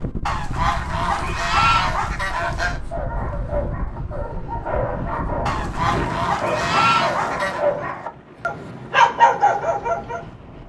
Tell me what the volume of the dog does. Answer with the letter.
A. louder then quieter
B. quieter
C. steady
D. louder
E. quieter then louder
D.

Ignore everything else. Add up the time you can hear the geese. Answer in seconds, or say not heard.
5 s.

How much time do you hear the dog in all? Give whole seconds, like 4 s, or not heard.
8 s.